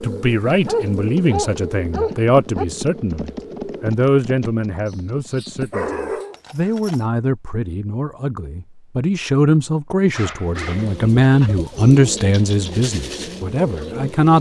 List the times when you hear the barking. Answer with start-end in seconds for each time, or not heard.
0.7-2.6, 4.8-6.4, 10.2-11.6.